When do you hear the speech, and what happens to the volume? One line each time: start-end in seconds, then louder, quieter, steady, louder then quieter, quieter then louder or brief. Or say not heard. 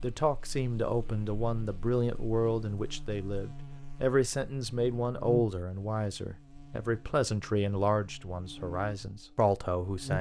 0.0-10.1 steady.